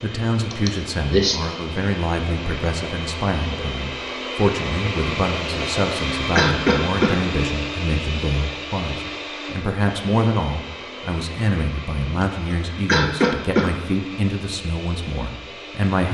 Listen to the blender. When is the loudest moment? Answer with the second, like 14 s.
6 s.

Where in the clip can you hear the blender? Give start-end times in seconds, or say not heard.
0.0-16.0.